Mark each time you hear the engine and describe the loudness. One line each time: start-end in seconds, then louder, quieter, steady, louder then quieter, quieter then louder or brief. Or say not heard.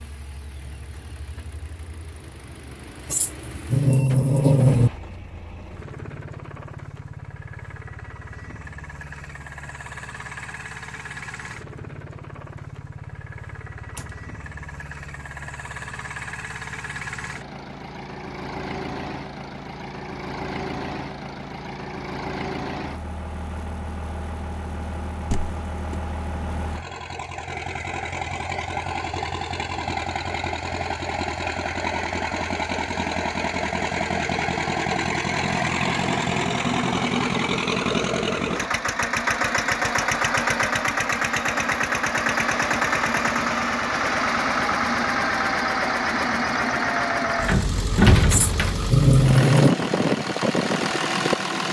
0.0-51.6 louder.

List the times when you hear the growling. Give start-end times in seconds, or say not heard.
3.1-4.9, 48.3-49.8.